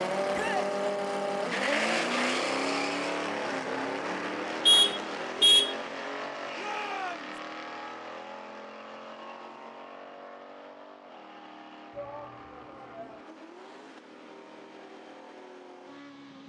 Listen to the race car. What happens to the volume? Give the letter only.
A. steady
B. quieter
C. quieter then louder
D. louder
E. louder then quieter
B.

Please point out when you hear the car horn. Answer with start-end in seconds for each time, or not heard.
4.7-5.8.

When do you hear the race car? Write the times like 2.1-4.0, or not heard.
0.0-16.4.